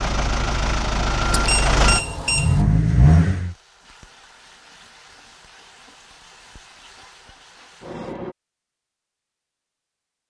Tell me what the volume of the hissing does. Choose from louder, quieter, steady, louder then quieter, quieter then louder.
louder.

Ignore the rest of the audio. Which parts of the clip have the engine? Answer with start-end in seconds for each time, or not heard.
0.0-3.5.